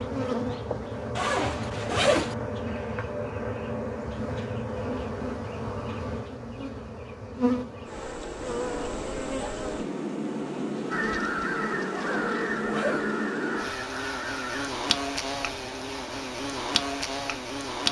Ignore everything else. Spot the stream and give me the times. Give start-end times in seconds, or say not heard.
not heard.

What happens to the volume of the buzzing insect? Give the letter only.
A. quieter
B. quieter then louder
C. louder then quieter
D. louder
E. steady
E.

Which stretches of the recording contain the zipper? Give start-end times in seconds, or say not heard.
1.1-2.4, 11.9-13.2.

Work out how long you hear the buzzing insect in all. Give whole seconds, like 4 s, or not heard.
18 s.